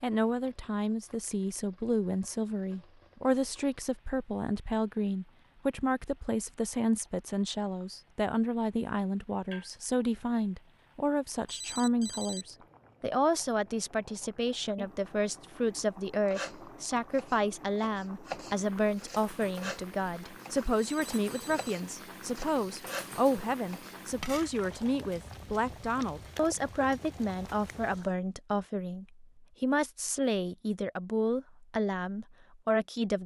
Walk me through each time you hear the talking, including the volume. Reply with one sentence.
You can hear the talking from 0.0 to 33.2 s, at a steady volume.